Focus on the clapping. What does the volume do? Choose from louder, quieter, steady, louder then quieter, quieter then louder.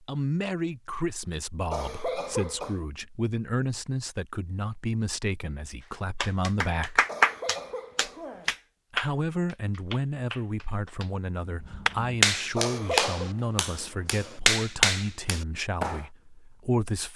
quieter then louder.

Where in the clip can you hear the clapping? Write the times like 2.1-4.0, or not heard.
6.2-16.0.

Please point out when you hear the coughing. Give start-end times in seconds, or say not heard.
1.7-2.9, 7.0-8.6, 12.6-13.3.